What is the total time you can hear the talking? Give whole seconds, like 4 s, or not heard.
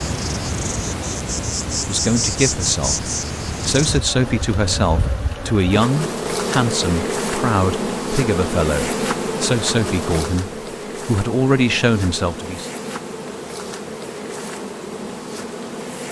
11 s.